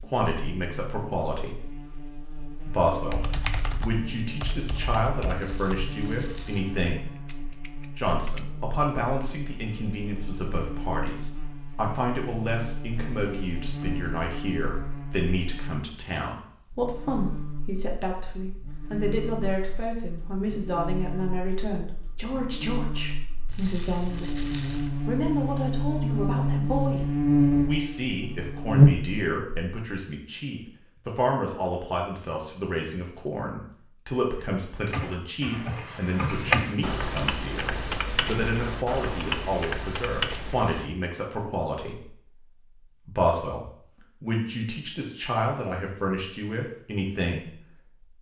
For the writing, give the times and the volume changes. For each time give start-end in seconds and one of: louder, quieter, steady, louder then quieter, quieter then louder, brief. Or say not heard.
not heard.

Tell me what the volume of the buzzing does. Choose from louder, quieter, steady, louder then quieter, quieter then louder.
louder.